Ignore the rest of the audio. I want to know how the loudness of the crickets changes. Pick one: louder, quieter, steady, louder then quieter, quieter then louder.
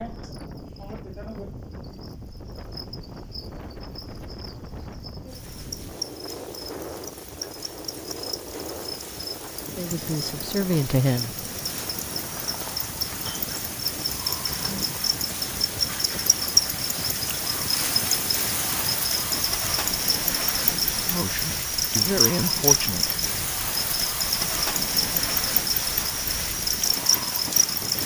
louder.